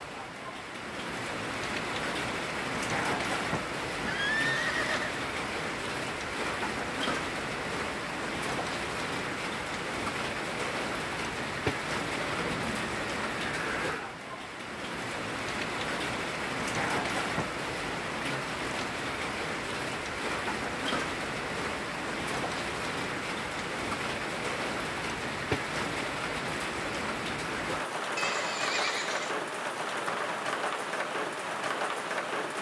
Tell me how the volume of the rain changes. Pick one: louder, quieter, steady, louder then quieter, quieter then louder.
steady.